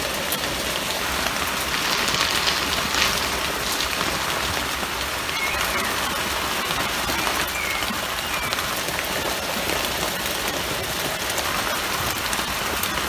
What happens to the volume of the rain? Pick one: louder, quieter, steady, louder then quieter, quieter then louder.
steady.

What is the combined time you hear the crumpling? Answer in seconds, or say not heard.
2 s.